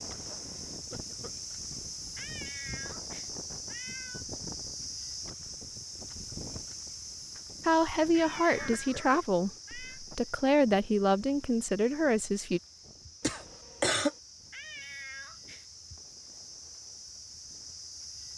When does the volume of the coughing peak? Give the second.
14 s.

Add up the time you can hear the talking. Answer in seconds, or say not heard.
5 s.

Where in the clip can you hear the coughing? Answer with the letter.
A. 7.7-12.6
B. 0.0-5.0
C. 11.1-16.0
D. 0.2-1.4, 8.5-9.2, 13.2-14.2
D.